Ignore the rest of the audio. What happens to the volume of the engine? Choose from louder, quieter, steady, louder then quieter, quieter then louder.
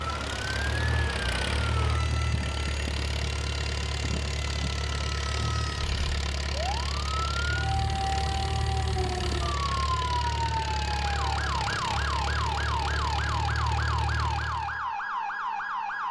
steady.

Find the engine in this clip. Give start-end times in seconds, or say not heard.
0.0-14.8.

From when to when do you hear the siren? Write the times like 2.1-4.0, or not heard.
0.0-16.0.